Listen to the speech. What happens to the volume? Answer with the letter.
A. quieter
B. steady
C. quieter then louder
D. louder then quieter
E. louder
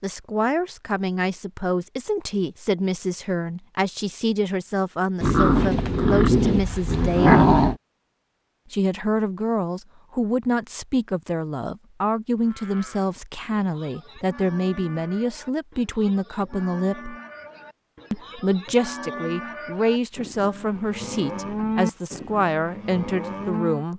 B.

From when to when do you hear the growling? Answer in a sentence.
You can hear the growling from 5.2 to 7.8 s.